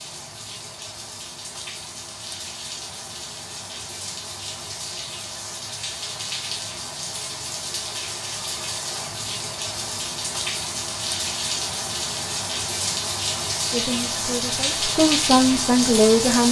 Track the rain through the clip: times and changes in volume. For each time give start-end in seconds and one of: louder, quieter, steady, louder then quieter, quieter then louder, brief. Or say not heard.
0.0-16.4 louder.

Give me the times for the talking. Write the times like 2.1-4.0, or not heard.
13.7-16.4.